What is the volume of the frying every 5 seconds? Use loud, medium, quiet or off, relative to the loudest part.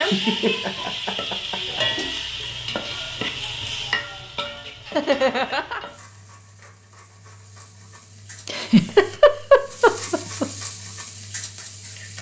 loud, quiet, medium.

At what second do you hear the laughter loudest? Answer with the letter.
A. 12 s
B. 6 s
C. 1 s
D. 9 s
D.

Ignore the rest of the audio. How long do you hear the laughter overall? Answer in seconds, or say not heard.
5 s.